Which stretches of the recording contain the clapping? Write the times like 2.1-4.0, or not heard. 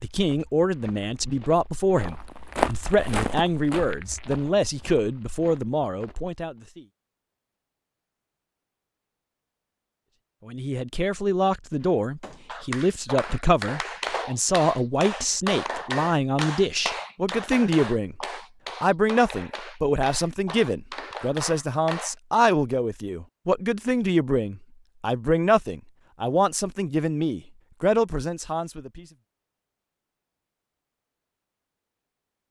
12.2-22.1.